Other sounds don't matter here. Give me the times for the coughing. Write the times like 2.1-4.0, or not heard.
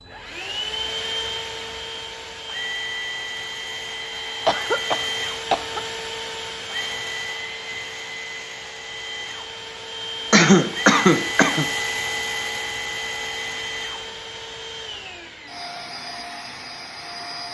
4.5-6.0, 10.3-11.7.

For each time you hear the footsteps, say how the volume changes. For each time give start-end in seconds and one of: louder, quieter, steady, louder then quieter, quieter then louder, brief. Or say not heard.
not heard.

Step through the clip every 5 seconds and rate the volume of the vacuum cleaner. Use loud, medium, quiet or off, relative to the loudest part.
loud, loud, loud, medium.